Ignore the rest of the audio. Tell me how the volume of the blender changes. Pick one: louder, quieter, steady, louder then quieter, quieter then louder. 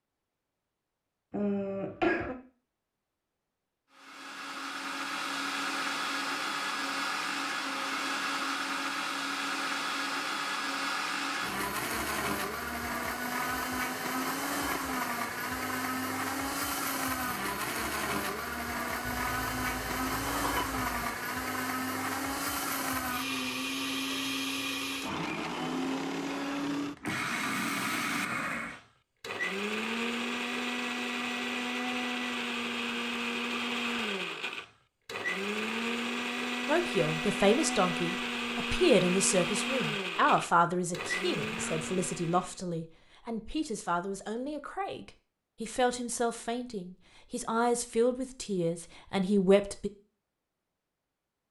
steady.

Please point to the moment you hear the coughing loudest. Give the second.
2 s.